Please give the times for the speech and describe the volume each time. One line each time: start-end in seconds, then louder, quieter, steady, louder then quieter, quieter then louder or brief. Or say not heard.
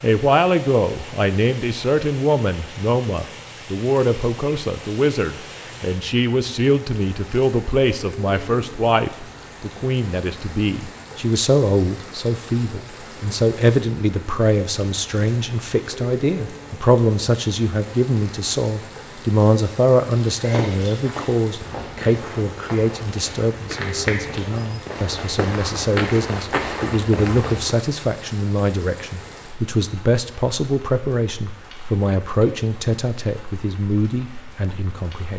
0.0-35.3 steady.